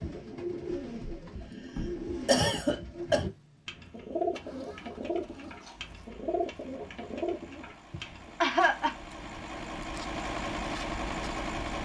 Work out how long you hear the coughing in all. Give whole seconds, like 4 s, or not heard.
2 s.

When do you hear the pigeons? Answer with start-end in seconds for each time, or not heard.
0.0-8.3.